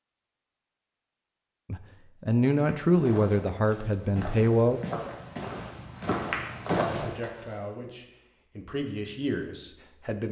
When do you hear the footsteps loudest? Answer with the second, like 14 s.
7 s.